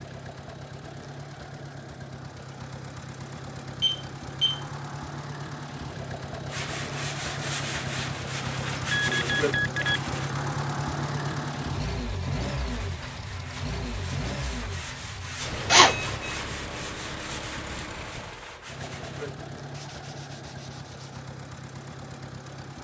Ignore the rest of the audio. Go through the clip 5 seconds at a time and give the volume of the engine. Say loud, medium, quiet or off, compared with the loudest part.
medium, loud, loud, medium, medium.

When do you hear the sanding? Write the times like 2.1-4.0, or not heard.
6.5-10.3, 12.7-21.2.